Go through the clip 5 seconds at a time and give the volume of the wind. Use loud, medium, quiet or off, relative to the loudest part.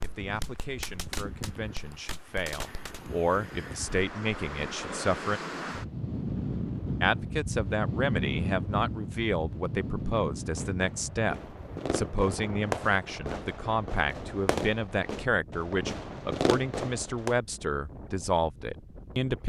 medium, loud, medium, quiet.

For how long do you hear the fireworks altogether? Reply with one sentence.
The fireworks can be heard for 10 seconds in total.